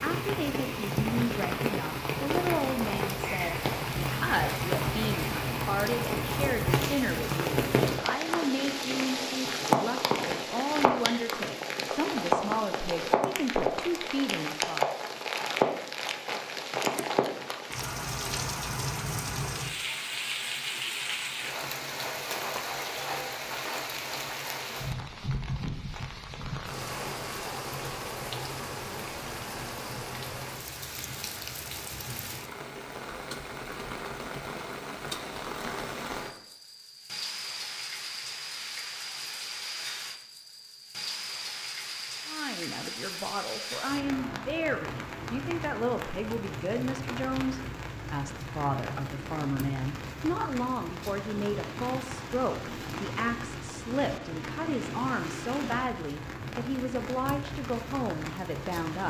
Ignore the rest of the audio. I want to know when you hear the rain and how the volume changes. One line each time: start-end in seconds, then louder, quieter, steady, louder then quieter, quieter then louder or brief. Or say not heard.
0.0-59.0 quieter.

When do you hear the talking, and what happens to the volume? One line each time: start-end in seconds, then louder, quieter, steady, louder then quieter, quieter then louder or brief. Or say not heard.
0.0-14.8 steady
42.2-59.0 steady.